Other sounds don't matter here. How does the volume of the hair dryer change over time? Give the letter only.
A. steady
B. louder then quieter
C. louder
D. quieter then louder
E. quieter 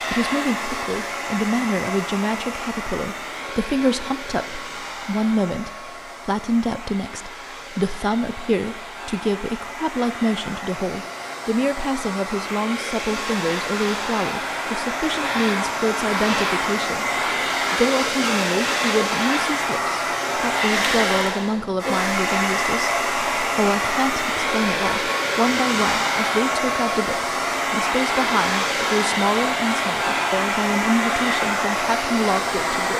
C.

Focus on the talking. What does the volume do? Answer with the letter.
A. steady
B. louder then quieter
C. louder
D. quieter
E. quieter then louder
A.